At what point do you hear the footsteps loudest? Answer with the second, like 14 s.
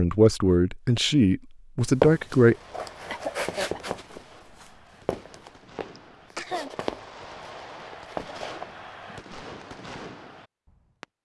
2 s.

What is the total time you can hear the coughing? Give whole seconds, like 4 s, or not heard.
2 s.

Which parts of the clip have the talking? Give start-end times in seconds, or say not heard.
0.0-2.5.